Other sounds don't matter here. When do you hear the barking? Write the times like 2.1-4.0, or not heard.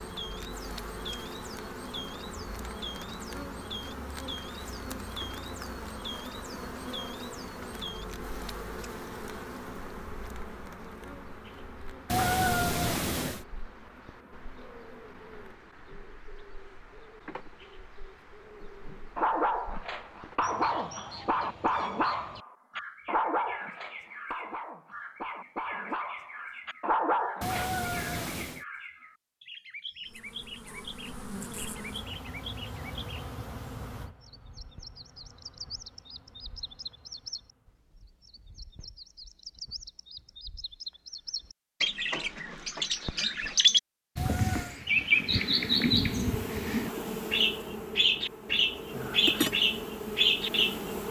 19.1-27.7.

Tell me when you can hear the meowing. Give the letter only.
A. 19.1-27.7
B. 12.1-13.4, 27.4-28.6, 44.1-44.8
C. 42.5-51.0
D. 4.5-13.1
B.